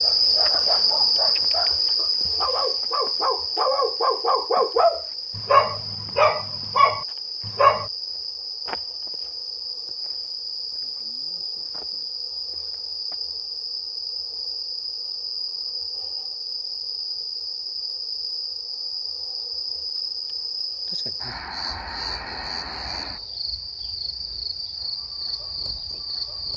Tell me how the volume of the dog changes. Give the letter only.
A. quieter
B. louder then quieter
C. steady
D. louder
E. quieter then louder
D.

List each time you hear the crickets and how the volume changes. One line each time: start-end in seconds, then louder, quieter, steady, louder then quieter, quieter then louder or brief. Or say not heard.
0.0-26.5 quieter.